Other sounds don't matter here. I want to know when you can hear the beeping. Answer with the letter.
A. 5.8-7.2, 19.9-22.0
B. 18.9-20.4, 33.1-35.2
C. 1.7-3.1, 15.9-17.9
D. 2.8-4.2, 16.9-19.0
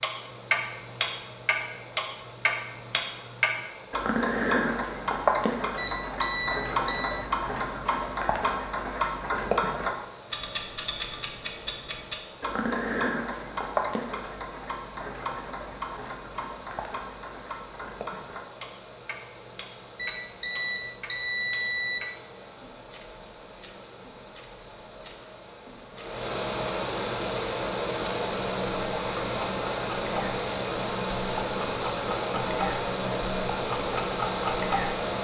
A.